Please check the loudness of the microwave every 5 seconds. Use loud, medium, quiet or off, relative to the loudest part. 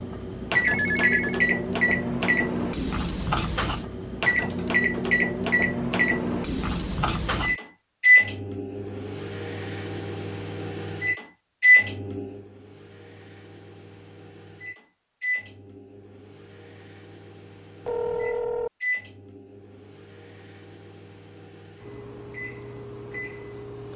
loud, loud, loud, quiet, quiet.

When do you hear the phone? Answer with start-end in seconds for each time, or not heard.
0.8-1.4, 17.9-18.7.